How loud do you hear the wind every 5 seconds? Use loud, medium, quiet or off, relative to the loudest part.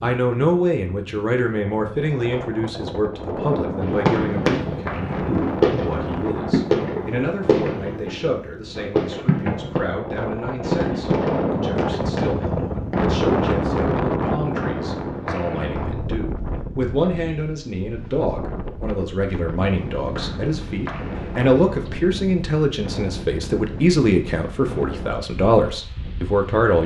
medium, medium, loud, medium, medium, quiet.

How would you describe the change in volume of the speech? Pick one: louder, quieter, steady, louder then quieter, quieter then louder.
quieter then louder.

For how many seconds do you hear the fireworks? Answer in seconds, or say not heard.
9 s.